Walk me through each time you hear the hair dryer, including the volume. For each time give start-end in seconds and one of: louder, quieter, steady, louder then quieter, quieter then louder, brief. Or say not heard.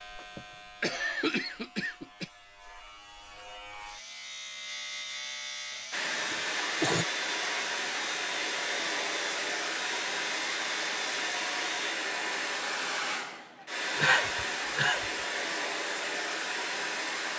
5.9-17.3 steady.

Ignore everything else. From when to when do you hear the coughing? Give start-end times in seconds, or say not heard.
0.1-2.3, 6.3-7.0, 14.0-15.1.